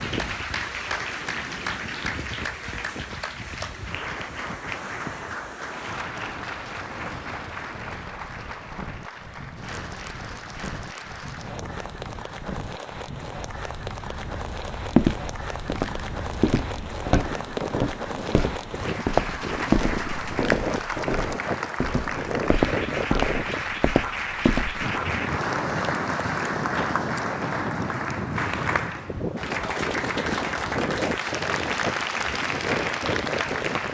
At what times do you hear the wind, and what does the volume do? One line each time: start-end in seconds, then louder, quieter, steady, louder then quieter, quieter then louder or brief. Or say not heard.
0.0-33.8 louder.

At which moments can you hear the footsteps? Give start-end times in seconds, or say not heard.
14.9-24.9.